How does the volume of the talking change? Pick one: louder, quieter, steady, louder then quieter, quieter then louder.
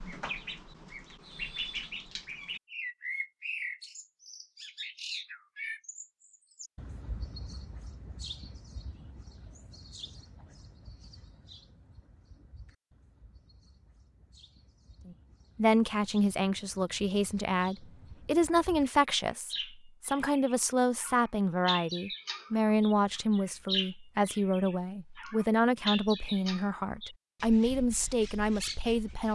steady.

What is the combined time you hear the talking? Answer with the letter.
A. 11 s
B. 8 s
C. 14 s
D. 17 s
C.